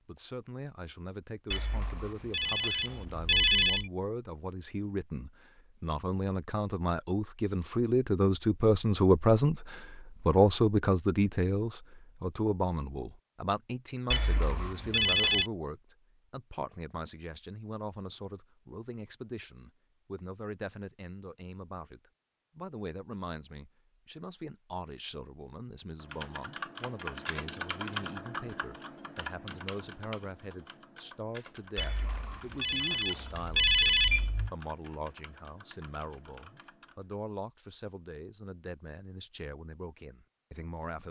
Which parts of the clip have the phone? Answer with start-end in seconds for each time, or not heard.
1.5-3.9, 14.1-15.5, 31.8-34.5.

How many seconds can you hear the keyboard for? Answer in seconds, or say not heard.
11 s.